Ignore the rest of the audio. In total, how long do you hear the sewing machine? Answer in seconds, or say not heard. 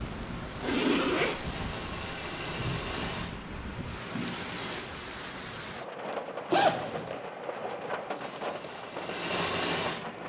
7 s.